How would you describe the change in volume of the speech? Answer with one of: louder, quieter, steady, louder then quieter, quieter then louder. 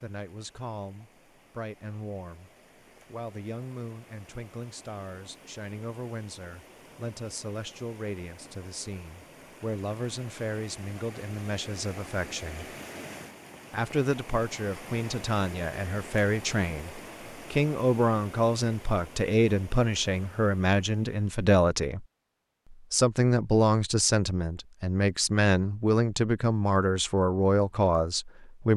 louder.